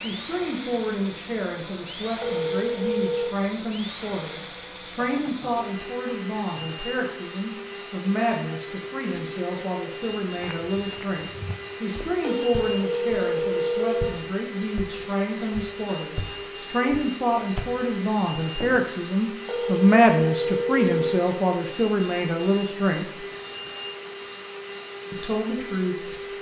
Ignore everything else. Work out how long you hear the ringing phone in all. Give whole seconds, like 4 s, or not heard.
5 s.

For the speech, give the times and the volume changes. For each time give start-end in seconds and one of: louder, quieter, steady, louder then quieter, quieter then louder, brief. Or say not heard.
0.0-23.2 louder
25.1-26.1 brief.